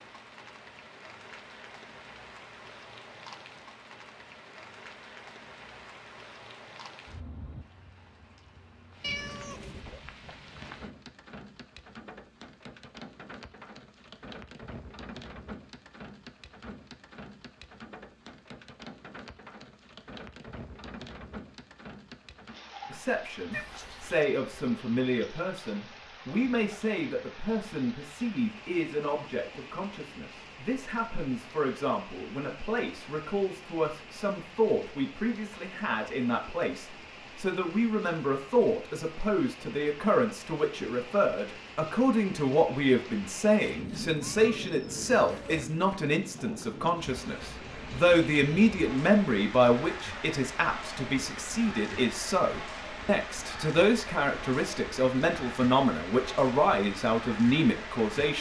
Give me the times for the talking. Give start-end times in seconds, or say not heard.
22.9-58.3.